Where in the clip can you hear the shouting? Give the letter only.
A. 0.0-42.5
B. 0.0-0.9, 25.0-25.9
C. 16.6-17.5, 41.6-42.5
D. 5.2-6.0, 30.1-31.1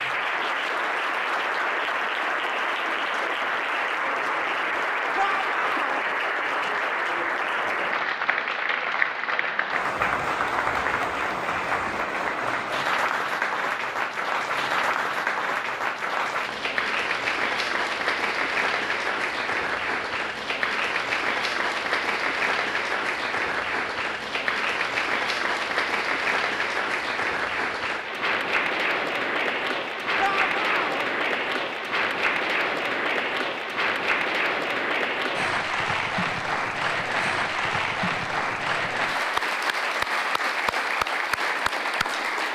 D.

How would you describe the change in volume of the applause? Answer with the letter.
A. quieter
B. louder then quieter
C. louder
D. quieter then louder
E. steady
E.